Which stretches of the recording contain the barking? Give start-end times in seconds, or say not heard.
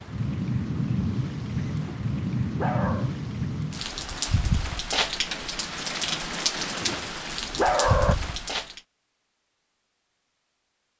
1.6-3.1, 6.5-8.2.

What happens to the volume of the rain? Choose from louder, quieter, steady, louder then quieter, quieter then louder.
steady.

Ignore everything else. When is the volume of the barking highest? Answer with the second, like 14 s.
8 s.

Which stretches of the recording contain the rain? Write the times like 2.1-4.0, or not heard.
0.0-8.8.